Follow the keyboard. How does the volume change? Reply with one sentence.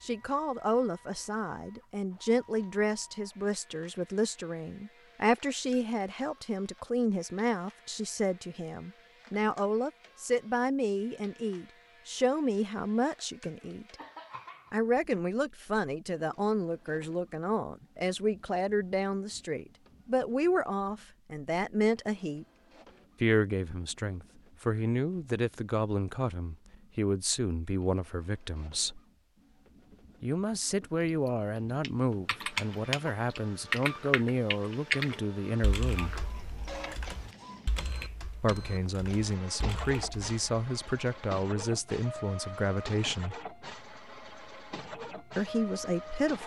The volume of the keyboard goes down.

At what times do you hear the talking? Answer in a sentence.
The talking can be heard from 0.0 to 13.9 s, from 14.7 to 22.4 s, from 23.2 to 29.0 s, from 30.2 to 36.1 s, from 38.4 to 43.4 s and from 45.4 to 46.4 s.